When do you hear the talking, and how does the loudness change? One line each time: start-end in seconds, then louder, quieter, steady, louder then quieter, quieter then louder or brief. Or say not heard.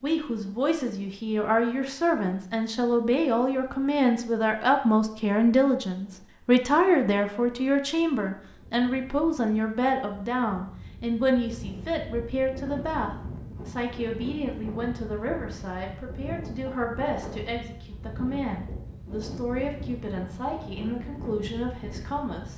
0.0-22.5 quieter.